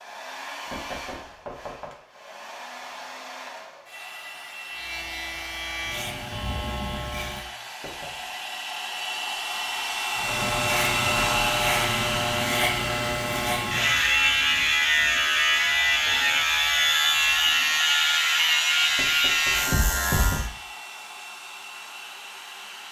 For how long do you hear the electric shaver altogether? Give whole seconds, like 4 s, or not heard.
13 s.